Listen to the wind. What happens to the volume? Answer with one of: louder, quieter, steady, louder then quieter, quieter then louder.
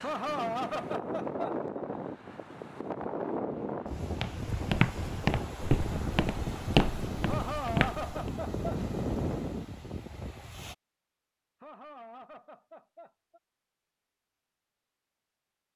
steady.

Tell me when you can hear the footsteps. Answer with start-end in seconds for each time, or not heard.
4.2-8.3.